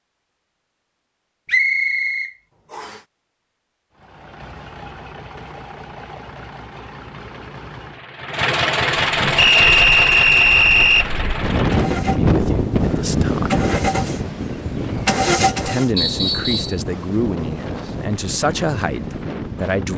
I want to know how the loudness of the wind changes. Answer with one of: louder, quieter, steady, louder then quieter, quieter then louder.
quieter.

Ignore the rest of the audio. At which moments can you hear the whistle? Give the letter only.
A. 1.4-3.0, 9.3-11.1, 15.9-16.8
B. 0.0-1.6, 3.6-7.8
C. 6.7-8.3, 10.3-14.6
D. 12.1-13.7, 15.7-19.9
A.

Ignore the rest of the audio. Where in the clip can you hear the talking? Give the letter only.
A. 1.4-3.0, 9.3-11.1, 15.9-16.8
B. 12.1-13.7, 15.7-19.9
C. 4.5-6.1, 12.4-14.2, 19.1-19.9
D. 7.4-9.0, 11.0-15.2
B.